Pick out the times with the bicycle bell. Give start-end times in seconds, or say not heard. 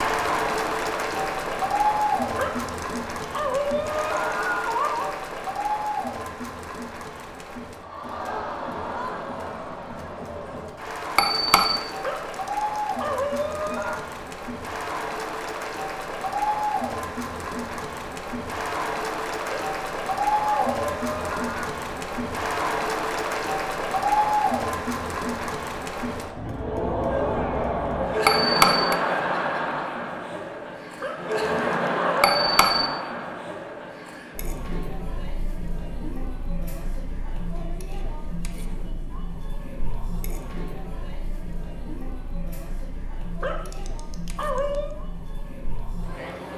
11.2-11.8, 28.2-28.9, 32.2-32.9.